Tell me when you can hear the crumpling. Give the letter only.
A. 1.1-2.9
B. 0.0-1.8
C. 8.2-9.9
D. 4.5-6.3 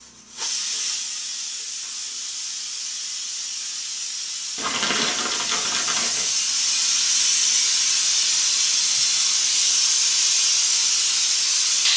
D.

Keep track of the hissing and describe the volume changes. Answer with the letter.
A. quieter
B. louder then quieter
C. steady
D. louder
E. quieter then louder
D.